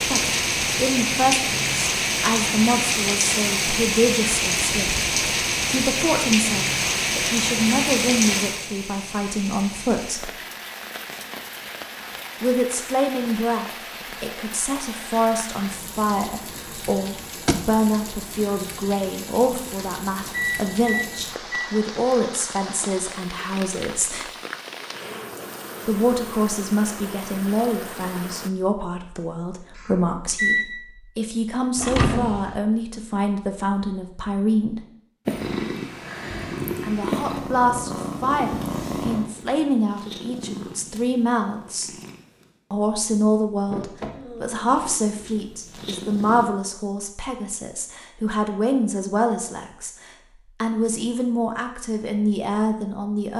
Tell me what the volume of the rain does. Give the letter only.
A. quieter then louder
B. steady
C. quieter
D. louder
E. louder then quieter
C.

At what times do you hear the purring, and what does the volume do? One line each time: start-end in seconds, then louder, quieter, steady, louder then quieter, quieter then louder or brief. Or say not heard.
35.2-46.5 quieter.